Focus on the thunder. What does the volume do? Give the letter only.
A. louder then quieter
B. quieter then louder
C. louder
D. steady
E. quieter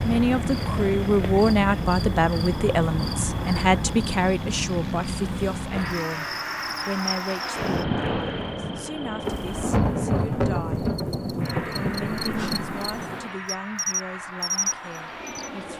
E.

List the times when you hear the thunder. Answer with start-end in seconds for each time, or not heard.
9.2-13.3.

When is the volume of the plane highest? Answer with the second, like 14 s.
8 s.